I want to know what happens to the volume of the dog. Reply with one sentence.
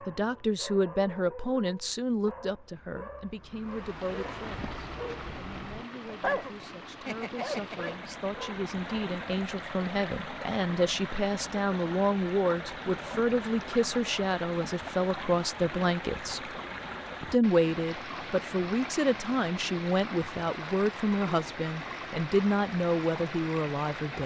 The volume of the dog goes up.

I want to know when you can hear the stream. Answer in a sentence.
You can hear the stream from 3.6 to 24.2 s.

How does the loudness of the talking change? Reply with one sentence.
The loudness of the talking goes down, then up.